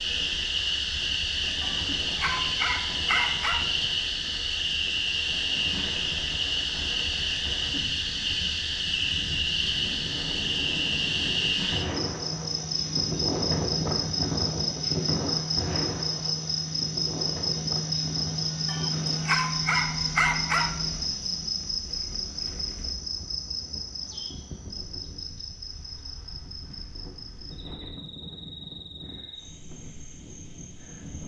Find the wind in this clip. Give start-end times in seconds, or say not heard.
0.0-31.2.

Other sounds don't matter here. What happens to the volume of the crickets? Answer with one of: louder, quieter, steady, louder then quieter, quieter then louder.
quieter.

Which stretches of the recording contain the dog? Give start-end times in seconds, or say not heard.
1.6-3.6, 18.6-20.7.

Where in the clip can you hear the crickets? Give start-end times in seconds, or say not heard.
0.0-31.2.